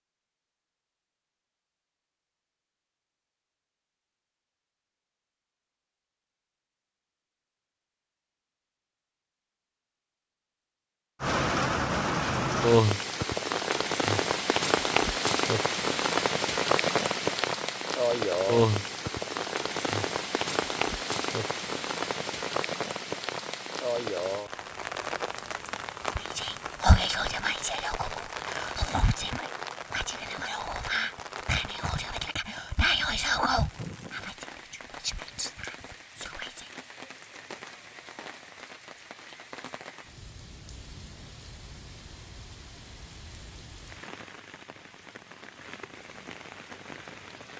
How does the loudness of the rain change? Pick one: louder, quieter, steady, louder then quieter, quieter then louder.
quieter.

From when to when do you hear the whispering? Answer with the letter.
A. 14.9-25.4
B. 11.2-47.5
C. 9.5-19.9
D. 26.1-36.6
D.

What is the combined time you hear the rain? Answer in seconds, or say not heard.
36 s.